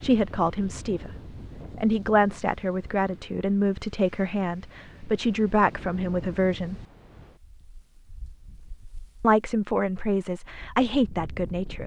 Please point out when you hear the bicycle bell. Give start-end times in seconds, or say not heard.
not heard.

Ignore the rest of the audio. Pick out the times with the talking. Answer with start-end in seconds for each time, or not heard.
0.0-6.8, 9.2-11.8.